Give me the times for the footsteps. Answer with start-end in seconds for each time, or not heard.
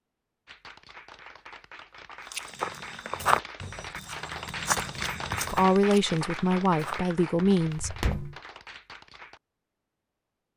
2.3-8.3.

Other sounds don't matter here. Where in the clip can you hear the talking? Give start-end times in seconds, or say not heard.
5.5-8.1.